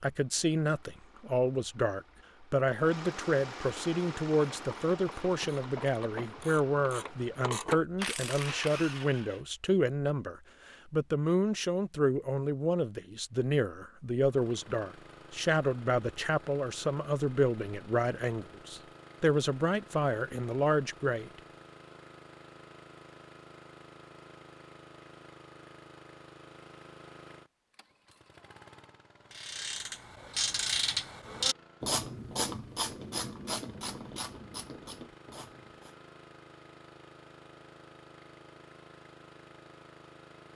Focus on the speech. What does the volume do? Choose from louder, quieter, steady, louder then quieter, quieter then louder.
steady.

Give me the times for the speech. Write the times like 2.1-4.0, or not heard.
0.0-21.3.